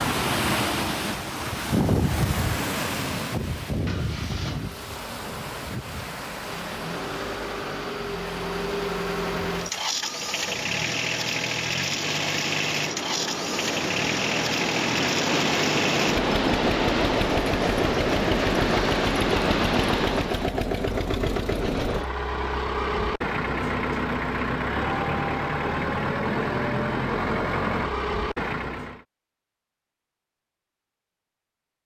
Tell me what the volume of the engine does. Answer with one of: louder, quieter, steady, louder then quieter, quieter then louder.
louder.